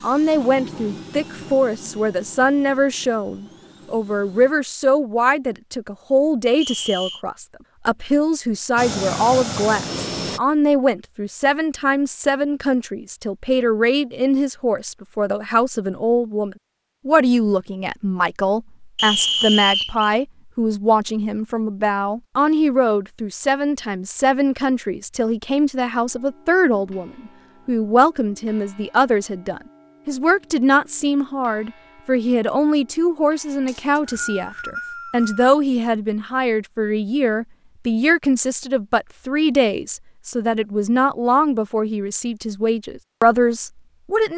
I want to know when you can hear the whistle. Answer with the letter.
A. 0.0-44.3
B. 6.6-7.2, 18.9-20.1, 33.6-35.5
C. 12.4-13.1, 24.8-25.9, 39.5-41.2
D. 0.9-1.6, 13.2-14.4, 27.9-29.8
B.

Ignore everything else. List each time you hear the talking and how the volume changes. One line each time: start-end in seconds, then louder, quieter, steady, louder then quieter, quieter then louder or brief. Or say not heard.
0.0-44.3 steady.